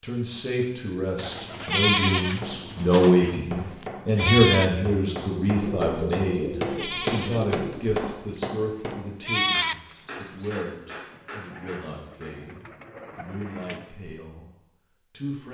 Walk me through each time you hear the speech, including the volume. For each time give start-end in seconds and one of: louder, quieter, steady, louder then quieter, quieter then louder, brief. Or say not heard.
0.0-15.5 quieter.